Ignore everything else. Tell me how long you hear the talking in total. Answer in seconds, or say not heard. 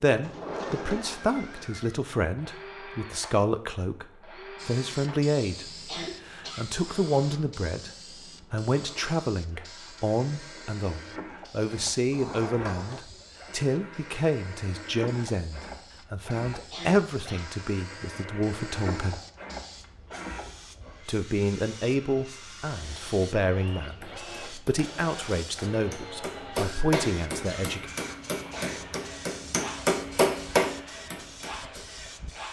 25 s.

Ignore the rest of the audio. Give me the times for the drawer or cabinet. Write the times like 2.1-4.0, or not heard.
0.2-1.7, 12.1-13.1.